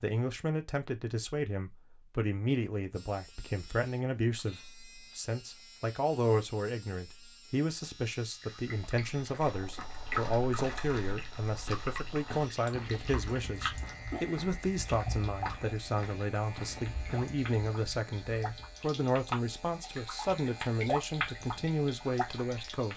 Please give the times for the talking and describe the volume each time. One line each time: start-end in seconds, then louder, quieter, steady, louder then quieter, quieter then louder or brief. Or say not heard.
0.0-22.9 steady.